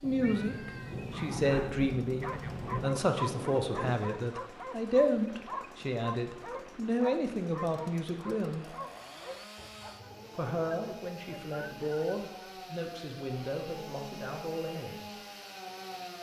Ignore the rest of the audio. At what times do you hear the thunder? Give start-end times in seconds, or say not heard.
0.0-3.9.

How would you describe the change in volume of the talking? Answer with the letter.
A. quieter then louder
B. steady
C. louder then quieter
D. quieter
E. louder
D.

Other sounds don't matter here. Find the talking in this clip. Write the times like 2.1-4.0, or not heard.
0.0-8.8, 10.3-15.2.